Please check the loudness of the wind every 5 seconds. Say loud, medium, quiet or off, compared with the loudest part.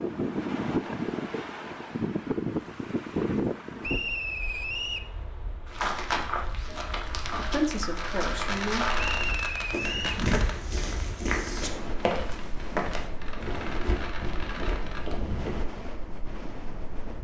loud, quiet, medium, medium.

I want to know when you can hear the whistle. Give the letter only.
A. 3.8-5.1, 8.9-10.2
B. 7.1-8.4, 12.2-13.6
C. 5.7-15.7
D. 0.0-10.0
A.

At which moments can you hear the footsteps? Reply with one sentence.
You can hear the footsteps from 5.7 to 15.7 s.